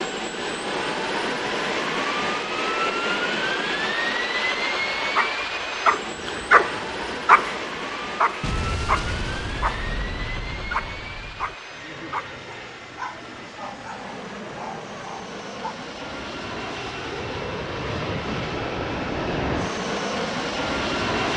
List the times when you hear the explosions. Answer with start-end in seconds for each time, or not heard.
8.4-11.6.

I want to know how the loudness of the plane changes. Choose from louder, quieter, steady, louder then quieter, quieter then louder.
quieter then louder.